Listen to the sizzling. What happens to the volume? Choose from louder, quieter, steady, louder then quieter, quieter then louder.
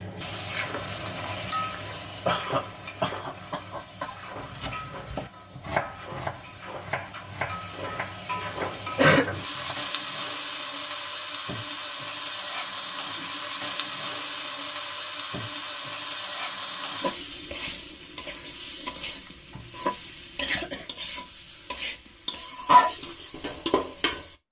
louder.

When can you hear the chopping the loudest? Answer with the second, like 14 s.
6 s.